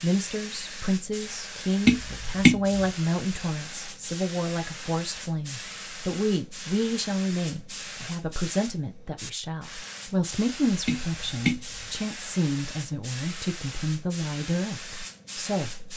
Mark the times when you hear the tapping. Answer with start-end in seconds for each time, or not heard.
1.9-2.9, 10.8-11.8.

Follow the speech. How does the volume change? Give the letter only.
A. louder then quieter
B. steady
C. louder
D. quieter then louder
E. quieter
B.